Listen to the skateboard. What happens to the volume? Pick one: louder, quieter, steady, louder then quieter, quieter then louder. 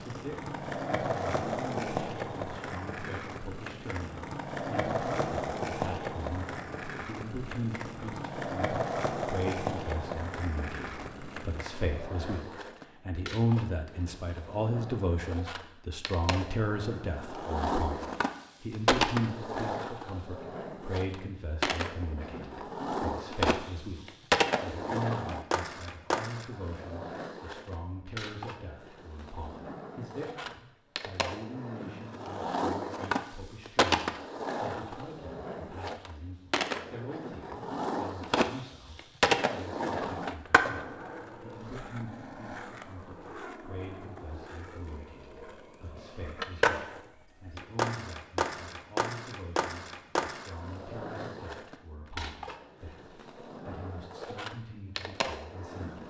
steady.